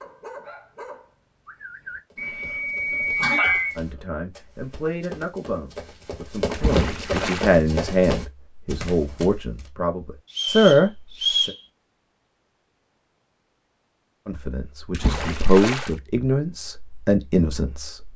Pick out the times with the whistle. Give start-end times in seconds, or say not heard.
2.1-3.8, 10.3-11.6.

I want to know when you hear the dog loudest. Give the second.
3 s.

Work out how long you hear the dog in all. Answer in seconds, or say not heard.
4 s.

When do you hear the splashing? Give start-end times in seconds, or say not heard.
6.5-7.5, 14.9-15.9.